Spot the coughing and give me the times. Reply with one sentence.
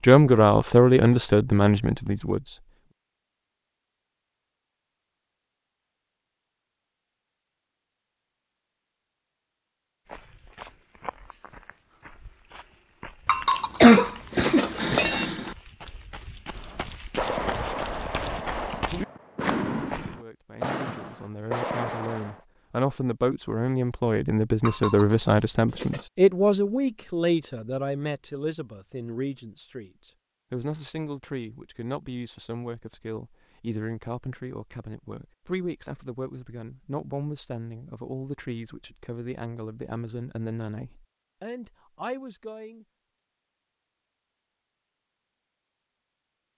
You can hear the coughing from 13.6 to 15.5 s.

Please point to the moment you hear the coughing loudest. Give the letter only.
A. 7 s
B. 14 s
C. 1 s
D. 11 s
B.